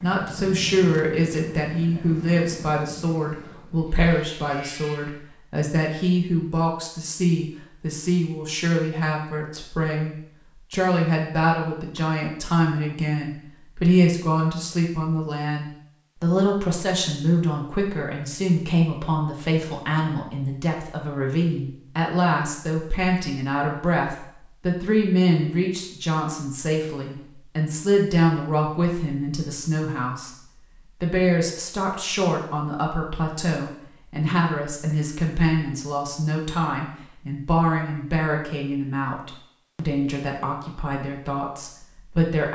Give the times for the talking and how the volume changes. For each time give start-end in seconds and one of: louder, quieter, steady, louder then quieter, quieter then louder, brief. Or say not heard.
0.0-42.5 steady.